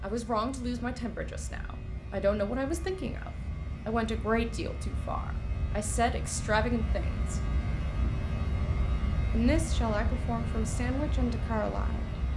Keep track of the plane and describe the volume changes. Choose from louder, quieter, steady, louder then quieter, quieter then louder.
louder.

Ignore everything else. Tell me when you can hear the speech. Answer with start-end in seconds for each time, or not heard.
0.0-7.4, 9.3-12.1.